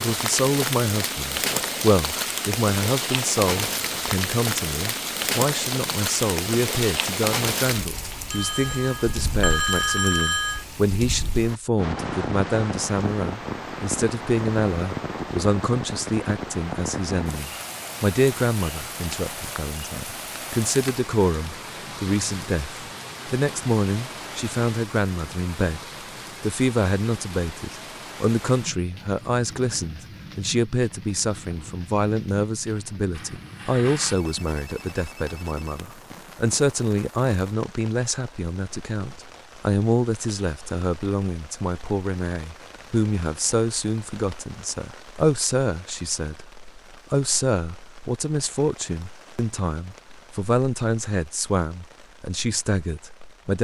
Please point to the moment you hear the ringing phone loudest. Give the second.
10 s.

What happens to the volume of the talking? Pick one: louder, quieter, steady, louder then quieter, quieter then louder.
steady.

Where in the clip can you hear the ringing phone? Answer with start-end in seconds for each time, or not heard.
8.3-10.7, 33.1-35.9.